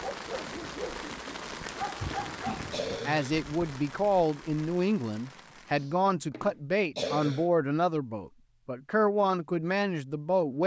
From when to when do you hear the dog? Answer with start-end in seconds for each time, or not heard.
0.0-2.8.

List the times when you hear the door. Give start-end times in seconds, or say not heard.
2.0-3.0.